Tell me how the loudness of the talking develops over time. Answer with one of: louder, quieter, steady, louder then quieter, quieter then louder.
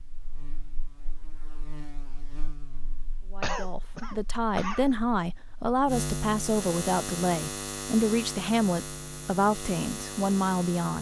steady.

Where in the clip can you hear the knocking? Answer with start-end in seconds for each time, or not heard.
not heard.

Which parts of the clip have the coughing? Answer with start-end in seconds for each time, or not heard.
3.4-5.0.